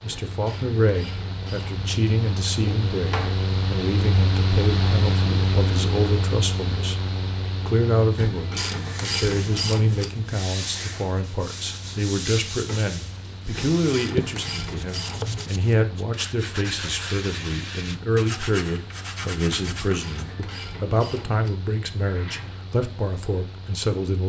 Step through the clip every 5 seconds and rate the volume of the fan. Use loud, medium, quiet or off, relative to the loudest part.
loud, loud, quiet, quiet, quiet.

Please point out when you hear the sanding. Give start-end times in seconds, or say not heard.
8.8-20.4.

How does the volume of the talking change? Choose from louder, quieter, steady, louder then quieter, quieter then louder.
steady.